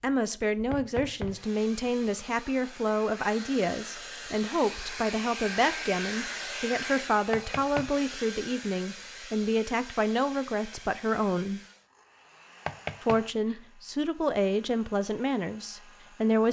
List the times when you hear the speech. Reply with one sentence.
The speech can be heard from 0.0 to 11.6 s and from 13.0 to 16.4 s.